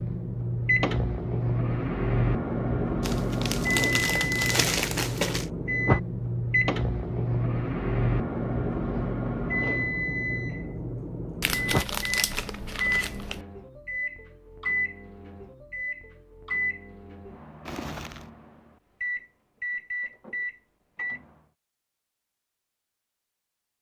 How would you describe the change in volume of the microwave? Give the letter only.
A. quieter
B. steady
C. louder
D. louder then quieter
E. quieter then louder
A.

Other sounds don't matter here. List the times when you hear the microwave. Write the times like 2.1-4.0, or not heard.
0.0-21.2.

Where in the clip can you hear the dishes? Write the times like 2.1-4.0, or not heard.
not heard.